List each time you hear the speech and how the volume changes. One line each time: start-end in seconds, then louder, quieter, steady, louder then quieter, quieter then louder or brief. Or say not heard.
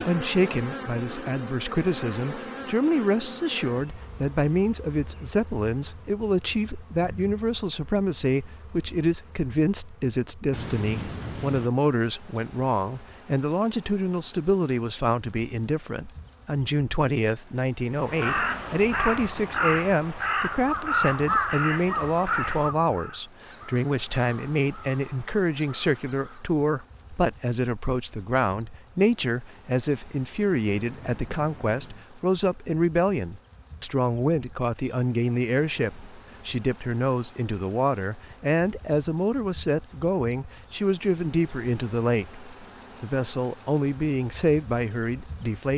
0.0-45.7 steady.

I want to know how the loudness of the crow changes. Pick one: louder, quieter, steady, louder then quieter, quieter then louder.
quieter.